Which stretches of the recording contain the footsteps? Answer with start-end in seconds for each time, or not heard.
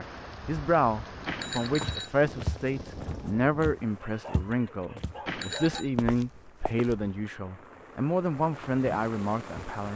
1.8-7.2.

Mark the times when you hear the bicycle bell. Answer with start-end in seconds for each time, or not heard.
1.2-2.1, 5.2-5.9.